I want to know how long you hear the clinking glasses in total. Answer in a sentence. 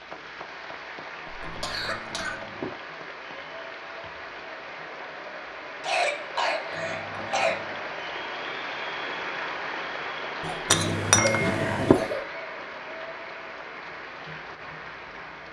You can hear the clinking glasses for 4 seconds altogether.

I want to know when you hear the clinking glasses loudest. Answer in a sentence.
The volume of the clinking glasses peaks at 11 seconds.